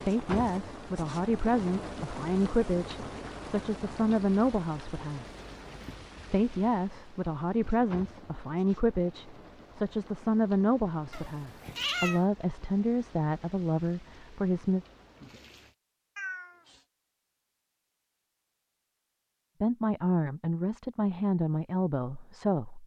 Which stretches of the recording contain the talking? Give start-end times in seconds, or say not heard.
0.0-5.2, 6.3-14.8, 19.6-22.8.